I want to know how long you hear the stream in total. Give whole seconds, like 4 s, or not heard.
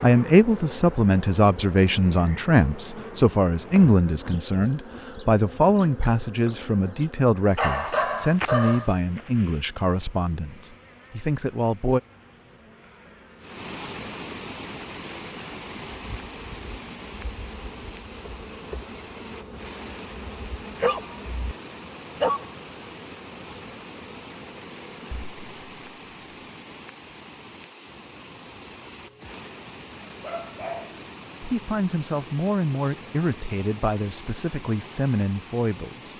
23 s.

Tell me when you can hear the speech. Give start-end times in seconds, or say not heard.
0.0-12.0, 31.4-36.1.